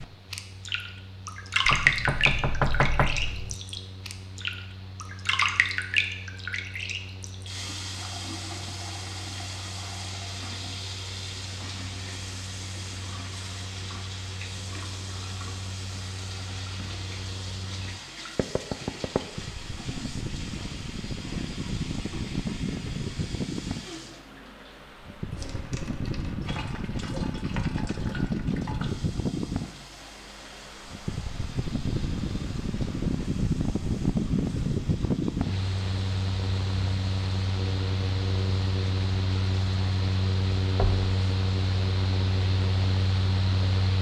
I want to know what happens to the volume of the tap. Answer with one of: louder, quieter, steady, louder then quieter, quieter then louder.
quieter.